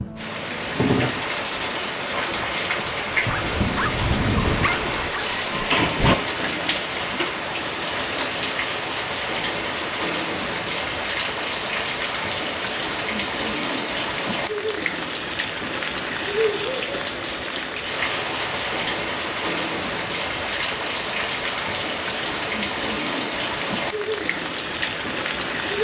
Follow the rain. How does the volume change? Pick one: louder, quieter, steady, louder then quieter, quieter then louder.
steady.